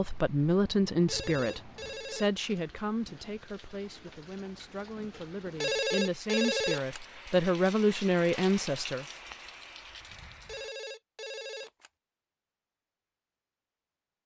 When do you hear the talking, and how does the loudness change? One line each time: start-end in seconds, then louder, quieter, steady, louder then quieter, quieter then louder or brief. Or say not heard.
0.0-9.1 quieter then louder.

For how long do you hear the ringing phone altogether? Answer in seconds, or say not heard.
4 s.